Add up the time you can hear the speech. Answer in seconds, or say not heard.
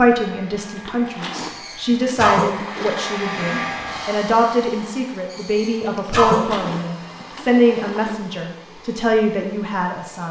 10 s.